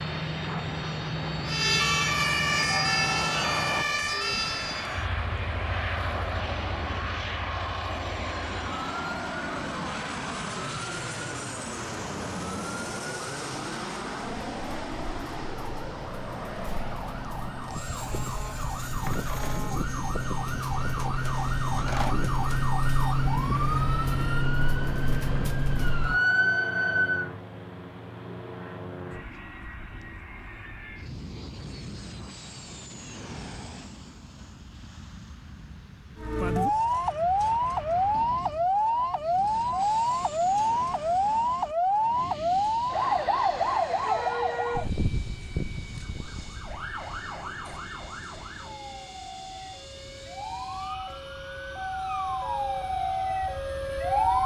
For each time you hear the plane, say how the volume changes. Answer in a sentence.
The plane can be heard from 0.0 to 54.4 s, getting quieter.